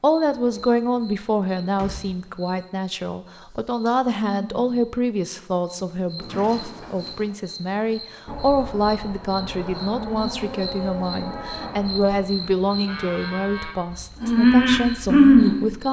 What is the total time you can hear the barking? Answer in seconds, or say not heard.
not heard.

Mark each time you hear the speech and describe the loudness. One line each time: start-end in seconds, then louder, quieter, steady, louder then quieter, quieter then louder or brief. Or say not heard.
0.0-15.8 steady.